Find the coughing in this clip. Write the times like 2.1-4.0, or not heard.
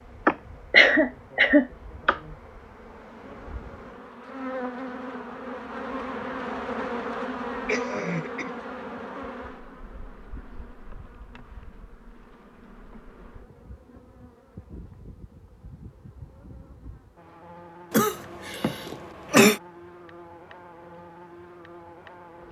0.2-2.2, 7.7-8.6, 17.9-19.6.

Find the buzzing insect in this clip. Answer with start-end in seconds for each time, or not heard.
0.0-22.4.